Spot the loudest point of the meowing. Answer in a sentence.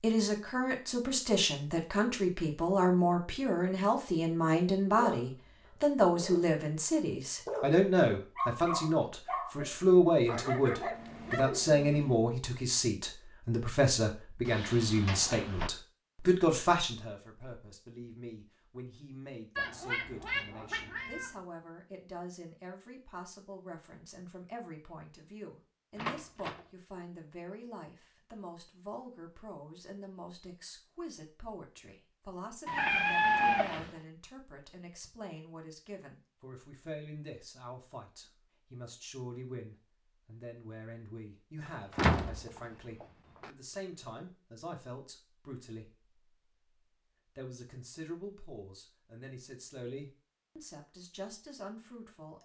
The volume of the meowing peaks at 33 seconds.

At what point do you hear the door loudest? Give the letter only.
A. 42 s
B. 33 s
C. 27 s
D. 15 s
A.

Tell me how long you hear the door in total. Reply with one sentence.
You can hear the door for 4 seconds altogether.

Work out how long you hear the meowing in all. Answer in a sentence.
You can hear the meowing for 3 seconds altogether.